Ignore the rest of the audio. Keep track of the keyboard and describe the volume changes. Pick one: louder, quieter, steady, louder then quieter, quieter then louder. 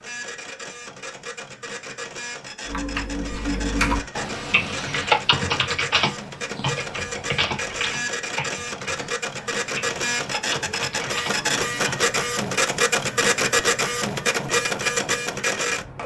quieter.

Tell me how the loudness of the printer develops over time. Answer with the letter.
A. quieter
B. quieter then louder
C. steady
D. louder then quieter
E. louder
E.